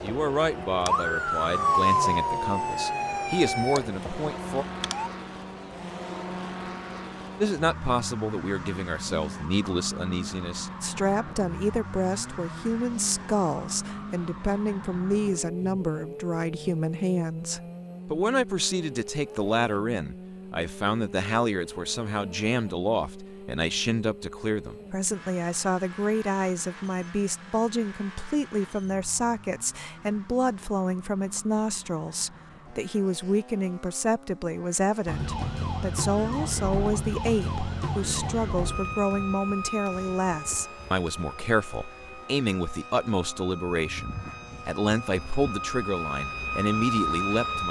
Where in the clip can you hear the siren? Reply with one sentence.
The siren can be heard from 0.0 to 5.1 s and from 35.0 to 47.6 s.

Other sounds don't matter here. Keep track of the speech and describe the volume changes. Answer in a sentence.
The volume of the speech stays about the same.